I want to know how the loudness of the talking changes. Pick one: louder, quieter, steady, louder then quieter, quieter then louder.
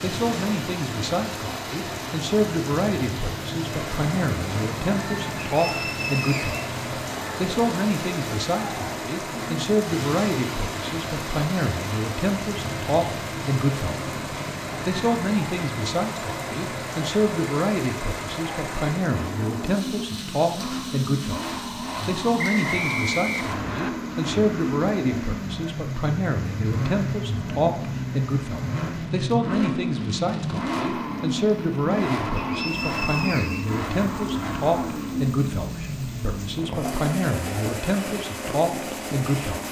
steady.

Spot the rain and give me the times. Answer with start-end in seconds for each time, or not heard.
0.0-39.6.